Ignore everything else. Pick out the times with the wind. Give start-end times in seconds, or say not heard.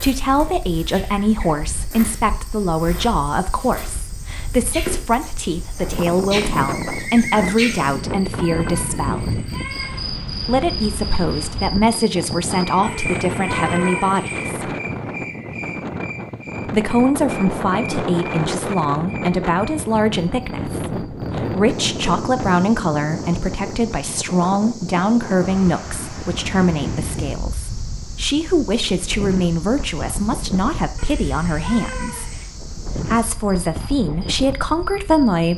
0.0-35.5.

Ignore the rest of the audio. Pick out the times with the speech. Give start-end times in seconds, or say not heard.
0.0-9.4, 10.4-14.8, 16.6-32.3, 33.0-35.5.